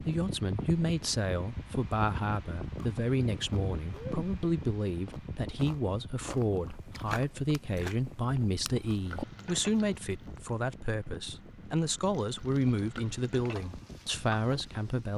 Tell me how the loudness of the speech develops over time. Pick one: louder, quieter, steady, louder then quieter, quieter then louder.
steady.